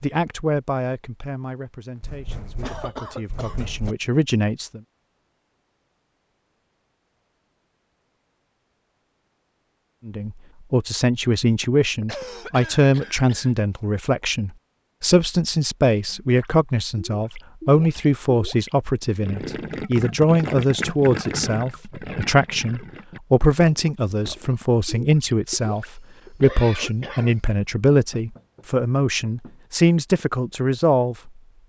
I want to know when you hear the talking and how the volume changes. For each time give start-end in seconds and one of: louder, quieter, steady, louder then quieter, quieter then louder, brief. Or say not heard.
0.0-4.8 quieter then louder
10.1-31.3 steady.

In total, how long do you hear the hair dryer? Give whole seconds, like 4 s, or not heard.
not heard.